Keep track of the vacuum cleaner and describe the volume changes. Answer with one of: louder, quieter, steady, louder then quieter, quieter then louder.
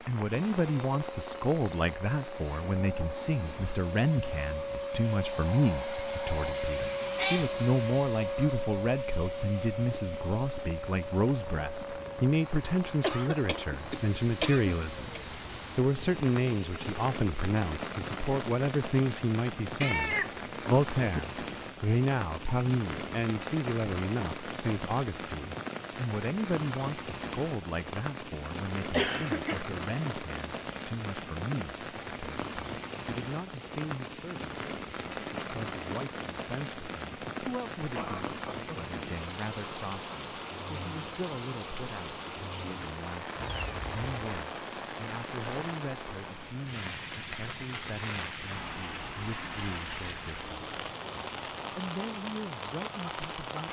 louder then quieter.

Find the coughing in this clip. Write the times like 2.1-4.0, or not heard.
13.0-15.2, 28.9-29.6, 38.0-38.9.